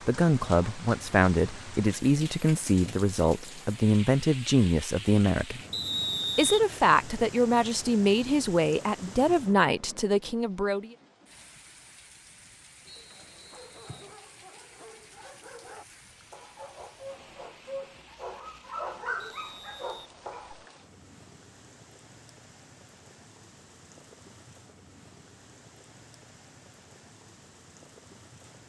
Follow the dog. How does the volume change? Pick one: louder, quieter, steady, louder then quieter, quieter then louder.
louder.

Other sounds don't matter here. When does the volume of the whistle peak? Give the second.
6 s.